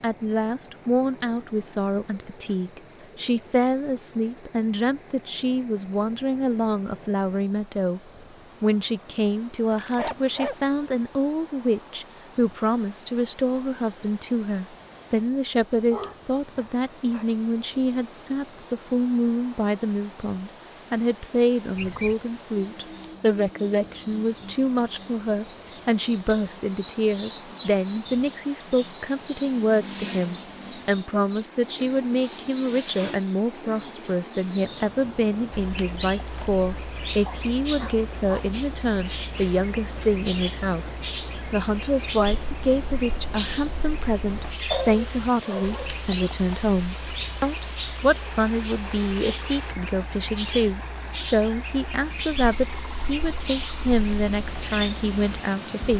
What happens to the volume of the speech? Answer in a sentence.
The loudness of the speech stays about the same.